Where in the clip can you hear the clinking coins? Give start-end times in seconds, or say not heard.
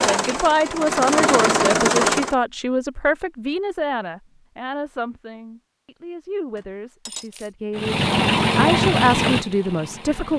6.5-7.5.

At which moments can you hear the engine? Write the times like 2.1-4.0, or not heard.
0.0-2.4, 7.8-10.3.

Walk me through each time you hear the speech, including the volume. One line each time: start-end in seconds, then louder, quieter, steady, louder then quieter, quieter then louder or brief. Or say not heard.
0.0-10.3 quieter then louder.